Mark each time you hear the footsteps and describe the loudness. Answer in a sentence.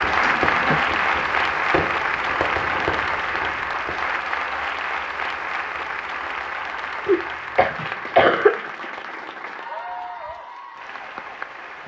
You can't hear the footsteps here.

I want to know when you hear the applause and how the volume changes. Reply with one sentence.
You can hear the applause from 0.0 to 11.8 s, getting quieter.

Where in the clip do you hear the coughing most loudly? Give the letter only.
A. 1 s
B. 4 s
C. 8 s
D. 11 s
C.